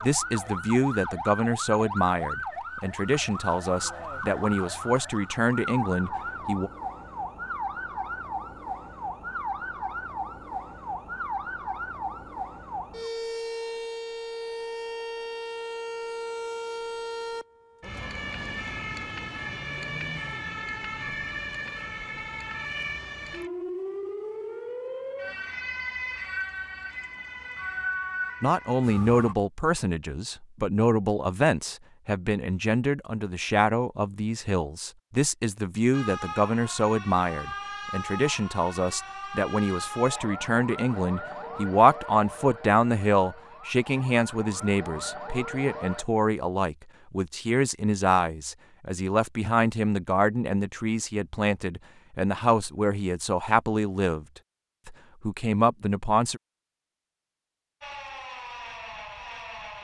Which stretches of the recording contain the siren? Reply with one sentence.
You can hear the siren from 0.0 to 29.4 s, from 35.9 to 46.0 s and from 57.8 to 59.7 s.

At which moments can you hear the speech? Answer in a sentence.
The speech can be heard from 0.0 to 6.7 s, from 28.4 to 54.2 s and from 54.9 to 56.4 s.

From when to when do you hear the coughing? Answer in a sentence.
You can't hear the coughing here.